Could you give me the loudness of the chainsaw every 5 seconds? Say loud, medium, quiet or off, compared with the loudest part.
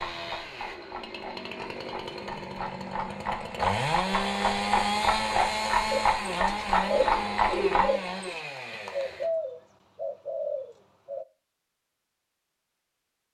loud, loud, off.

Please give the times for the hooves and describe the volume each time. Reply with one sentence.
You can hear the hooves from 0.0 to 7.9 s, getting louder.